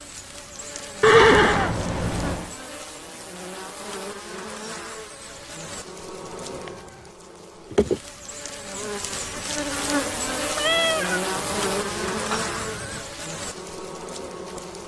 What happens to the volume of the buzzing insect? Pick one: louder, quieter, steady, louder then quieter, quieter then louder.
louder.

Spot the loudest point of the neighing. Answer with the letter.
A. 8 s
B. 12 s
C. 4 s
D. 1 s
D.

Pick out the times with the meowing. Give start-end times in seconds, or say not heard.
1.1-2.5, 6.2-7.1, 10.6-11.2.